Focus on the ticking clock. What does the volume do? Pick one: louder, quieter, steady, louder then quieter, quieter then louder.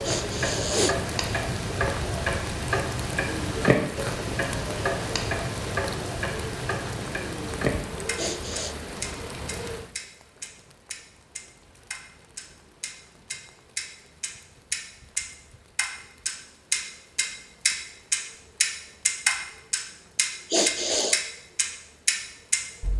quieter then louder.